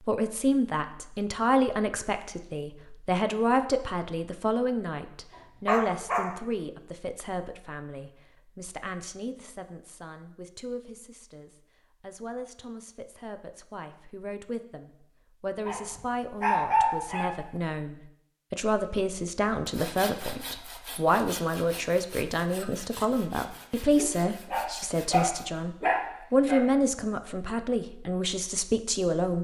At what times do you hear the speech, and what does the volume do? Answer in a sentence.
The speech can be heard from 0.1 to 29.3 s, getting quieter then louder.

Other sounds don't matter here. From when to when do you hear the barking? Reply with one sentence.
The barking can be heard from 5.3 to 6.3 s, from 15.7 to 17.6 s and from 23.9 to 26.6 s.